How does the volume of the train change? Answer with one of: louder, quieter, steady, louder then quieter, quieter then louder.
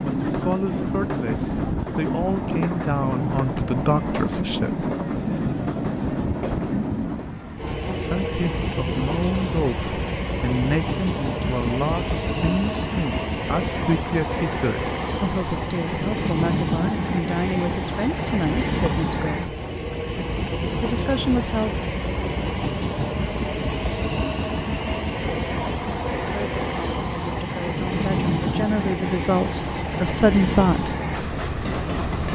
steady.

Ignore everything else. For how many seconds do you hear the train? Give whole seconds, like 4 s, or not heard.
32 s.